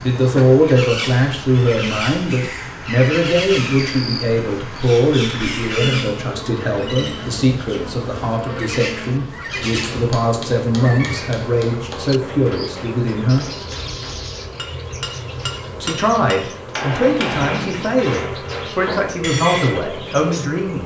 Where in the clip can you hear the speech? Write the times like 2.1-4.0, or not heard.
0.0-13.4, 15.8-20.8.